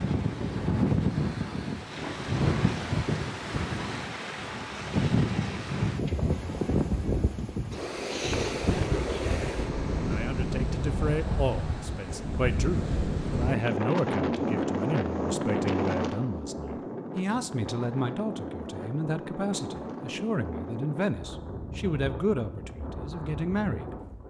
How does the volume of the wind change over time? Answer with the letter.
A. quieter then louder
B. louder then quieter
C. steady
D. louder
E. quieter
E.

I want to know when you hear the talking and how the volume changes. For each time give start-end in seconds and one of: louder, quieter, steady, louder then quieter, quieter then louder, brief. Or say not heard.
10.0-23.9 steady.